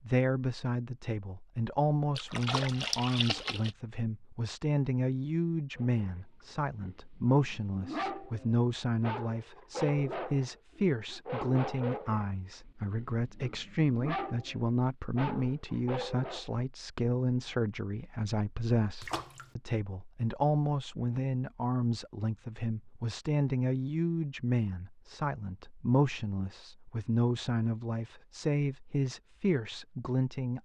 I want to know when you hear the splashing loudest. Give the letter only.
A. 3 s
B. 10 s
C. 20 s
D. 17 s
A.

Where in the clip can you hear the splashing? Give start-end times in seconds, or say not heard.
2.1-3.7, 19.0-19.6.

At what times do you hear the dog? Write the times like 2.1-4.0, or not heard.
5.8-6.2, 6.8-16.5.